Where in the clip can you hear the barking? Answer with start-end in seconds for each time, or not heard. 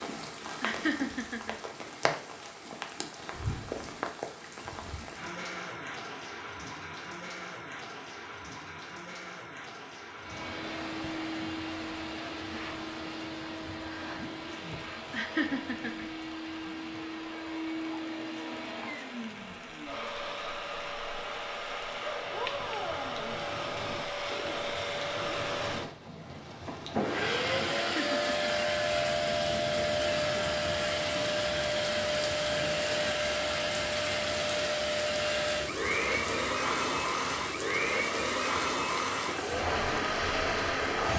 not heard.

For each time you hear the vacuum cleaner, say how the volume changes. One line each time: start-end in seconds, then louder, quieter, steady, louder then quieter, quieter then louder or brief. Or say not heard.
10.2-41.1 louder.